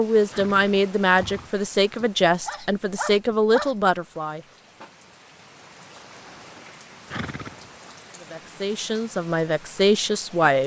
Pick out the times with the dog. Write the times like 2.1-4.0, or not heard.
2.0-3.8.